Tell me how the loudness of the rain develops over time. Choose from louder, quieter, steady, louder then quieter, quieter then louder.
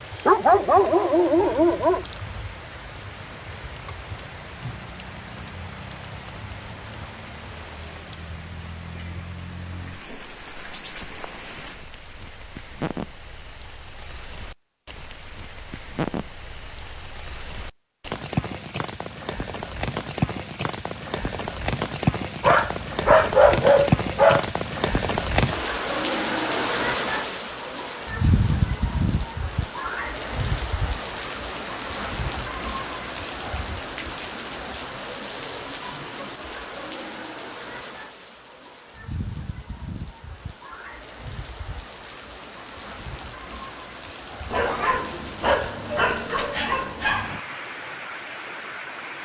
louder then quieter.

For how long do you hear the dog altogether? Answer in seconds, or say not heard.
7 s.